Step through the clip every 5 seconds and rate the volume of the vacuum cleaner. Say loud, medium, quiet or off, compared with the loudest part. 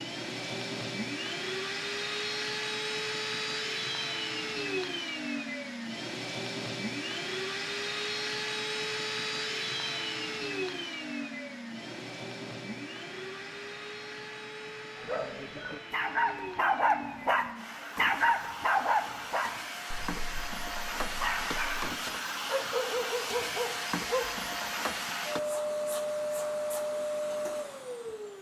loud, loud, medium, medium, loud, loud.